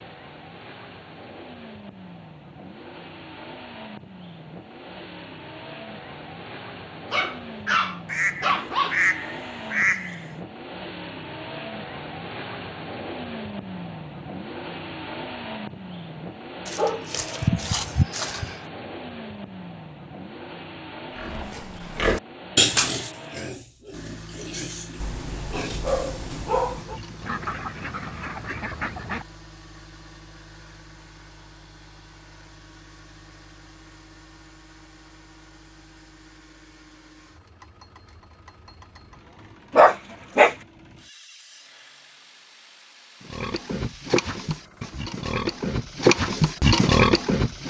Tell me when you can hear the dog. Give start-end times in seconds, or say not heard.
7.1-9.0, 16.6-18.6, 25.0-27.0, 39.7-40.5.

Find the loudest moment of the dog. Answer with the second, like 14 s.
40 s.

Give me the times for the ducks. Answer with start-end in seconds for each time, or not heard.
8.1-10.2, 27.2-29.2.